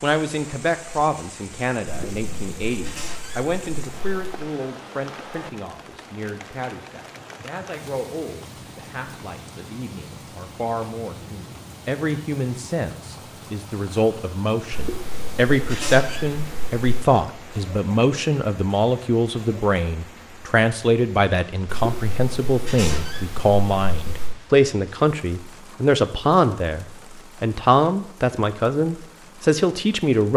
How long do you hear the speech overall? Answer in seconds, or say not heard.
30 s.